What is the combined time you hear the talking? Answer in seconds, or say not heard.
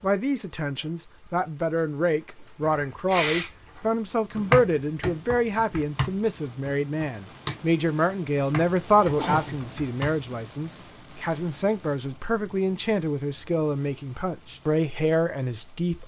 16 s.